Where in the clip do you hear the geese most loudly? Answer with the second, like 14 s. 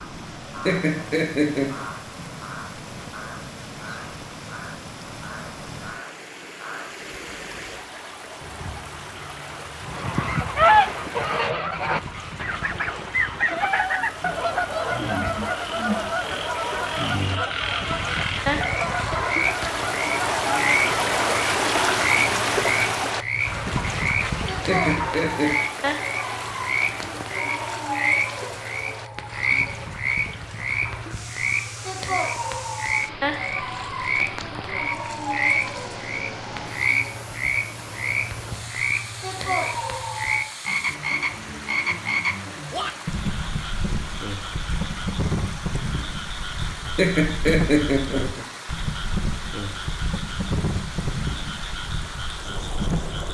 11 s.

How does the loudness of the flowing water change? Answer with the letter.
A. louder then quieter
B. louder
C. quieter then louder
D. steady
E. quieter
A.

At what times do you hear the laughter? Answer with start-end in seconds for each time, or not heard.
0.7-1.9, 24.6-25.6, 47.0-48.5.